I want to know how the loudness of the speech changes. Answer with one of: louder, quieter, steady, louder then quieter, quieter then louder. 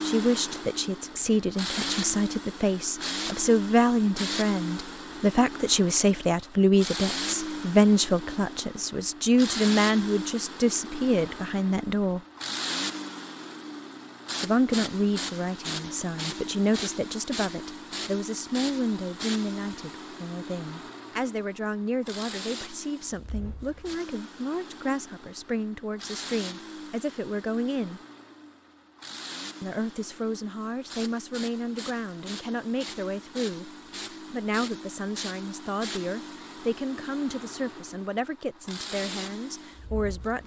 quieter.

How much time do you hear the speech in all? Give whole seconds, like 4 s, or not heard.
36 s.